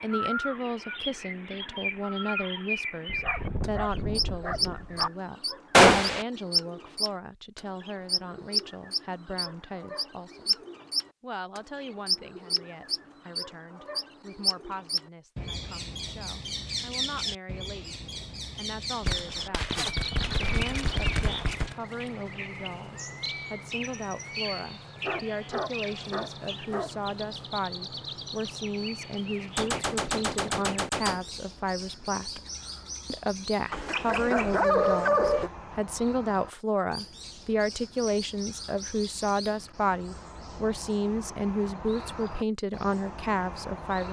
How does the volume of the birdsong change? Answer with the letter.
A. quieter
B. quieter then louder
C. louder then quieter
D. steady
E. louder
A.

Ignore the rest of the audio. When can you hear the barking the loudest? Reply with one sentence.
The volume of the barking peaks at 35 seconds.